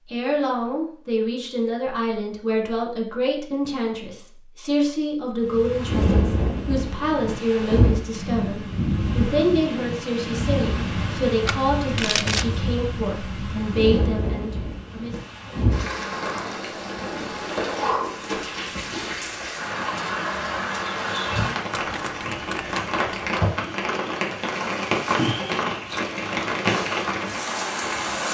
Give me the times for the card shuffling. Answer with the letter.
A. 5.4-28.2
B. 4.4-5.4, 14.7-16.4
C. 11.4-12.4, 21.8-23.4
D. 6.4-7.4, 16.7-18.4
C.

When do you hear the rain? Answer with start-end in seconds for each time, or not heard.
5.4-28.2.